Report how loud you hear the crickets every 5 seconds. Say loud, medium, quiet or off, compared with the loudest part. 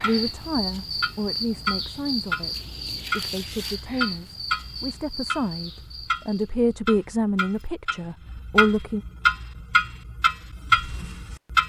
loud, medium, off.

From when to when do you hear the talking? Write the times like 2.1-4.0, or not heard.
0.0-9.1.